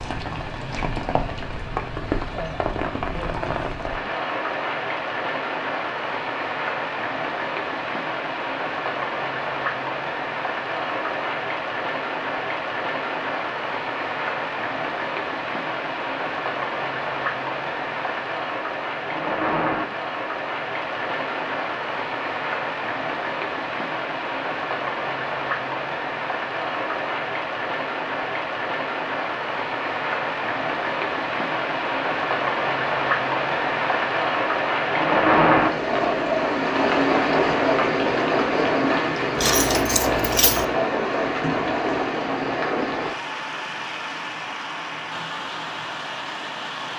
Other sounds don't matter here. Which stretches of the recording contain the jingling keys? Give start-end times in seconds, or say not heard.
39.4-40.6.